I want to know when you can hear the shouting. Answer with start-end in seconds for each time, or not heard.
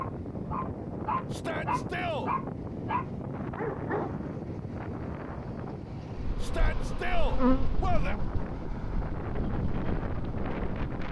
1.3-2.3, 6.4-8.2.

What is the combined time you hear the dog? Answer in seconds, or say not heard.
4 s.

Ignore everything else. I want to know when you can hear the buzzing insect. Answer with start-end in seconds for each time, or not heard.
6.2-11.0.